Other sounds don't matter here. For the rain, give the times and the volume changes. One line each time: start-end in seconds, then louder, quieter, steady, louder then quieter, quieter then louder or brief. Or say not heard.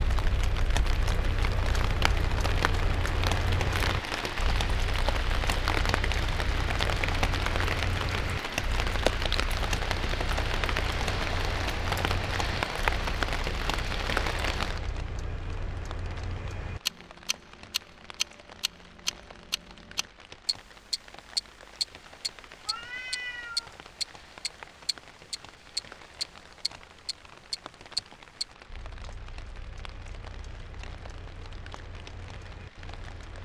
0.0-33.3 quieter.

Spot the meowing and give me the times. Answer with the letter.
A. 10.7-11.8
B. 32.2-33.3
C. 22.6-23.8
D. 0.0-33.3
C.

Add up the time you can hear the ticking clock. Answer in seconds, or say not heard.
33 s.